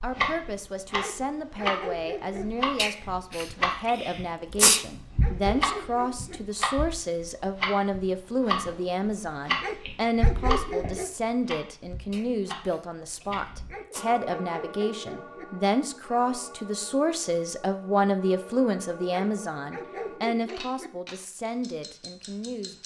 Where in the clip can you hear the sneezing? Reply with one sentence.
You can hear the sneezing from 2.8 to 4.8 s and from 12.1 to 14.1 s.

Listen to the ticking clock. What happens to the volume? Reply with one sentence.
The loudness of the ticking clock goes down.